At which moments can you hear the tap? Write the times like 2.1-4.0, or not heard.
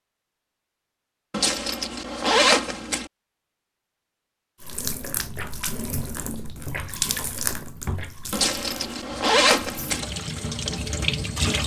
4.6-11.6.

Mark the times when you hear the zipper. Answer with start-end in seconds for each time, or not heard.
1.3-3.1, 8.3-10.1.